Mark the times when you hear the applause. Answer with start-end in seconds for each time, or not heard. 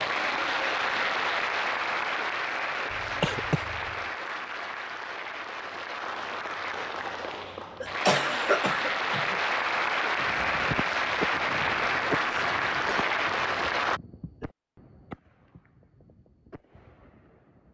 0.0-14.0.